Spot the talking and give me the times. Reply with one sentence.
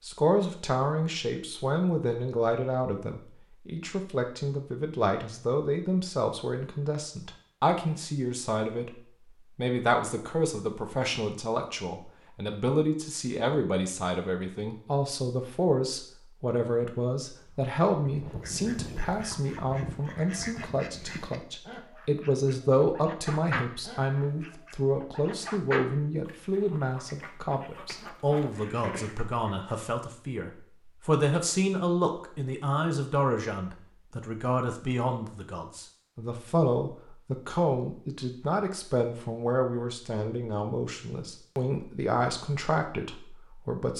The talking can be heard from 0.0 to 8.9 s and from 9.6 to 43.9 s.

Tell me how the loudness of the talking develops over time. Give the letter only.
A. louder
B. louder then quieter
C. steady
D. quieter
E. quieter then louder
C.